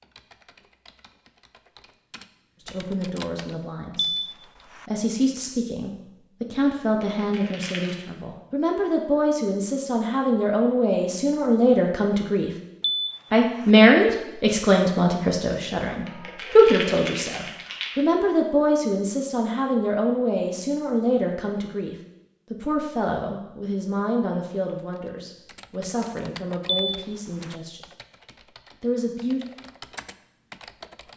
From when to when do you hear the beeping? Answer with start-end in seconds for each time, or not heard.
4.0-4.8, 12.8-13.7, 26.6-27.6.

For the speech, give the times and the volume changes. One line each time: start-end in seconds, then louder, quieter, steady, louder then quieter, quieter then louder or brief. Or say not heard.
2.6-12.5 louder
13.3-27.8 quieter
28.8-29.4 brief.